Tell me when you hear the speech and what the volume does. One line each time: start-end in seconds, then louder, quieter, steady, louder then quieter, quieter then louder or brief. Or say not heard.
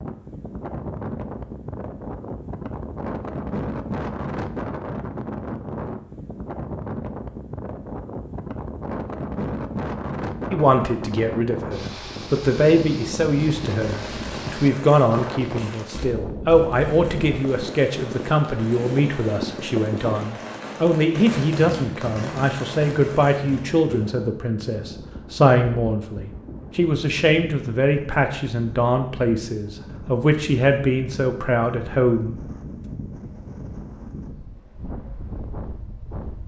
10.5-32.4 steady.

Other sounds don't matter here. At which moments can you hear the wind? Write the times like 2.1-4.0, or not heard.
0.0-36.4.